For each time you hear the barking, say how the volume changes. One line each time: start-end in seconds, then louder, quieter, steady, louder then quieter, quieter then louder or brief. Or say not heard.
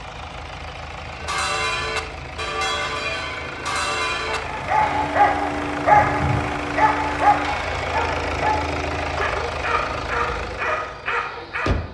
4.3-11.9 quieter.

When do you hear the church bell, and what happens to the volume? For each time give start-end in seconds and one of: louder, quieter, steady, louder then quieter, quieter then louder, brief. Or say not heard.
1.1-9.0 quieter.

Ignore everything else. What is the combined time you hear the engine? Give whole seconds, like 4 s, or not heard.
12 s.